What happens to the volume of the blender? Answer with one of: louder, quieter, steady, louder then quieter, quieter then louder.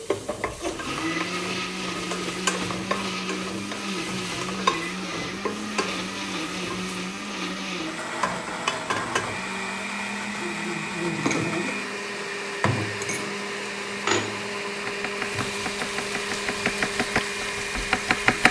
steady.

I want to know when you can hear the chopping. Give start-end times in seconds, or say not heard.
14.7-18.4.